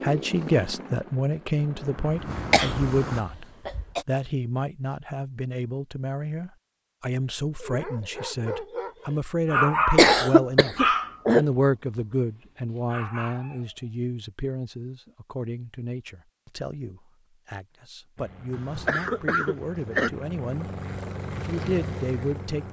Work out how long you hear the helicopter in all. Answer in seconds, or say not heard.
8 s.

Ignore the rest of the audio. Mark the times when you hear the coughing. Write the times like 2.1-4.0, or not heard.
2.5-4.0, 9.9-11.4, 18.5-20.1.